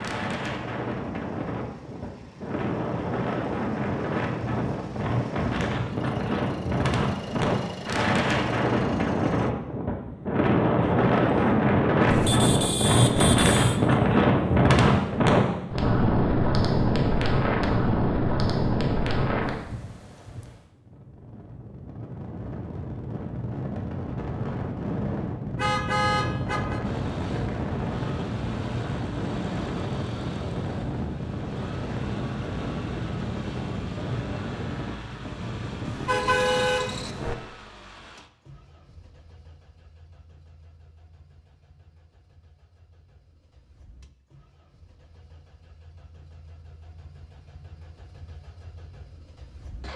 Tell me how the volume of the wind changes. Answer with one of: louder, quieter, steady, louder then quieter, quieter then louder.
louder then quieter.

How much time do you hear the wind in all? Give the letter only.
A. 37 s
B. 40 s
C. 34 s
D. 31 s
A.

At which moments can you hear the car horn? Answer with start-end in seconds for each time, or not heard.
12.1-13.8, 25.6-26.8, 35.9-37.4.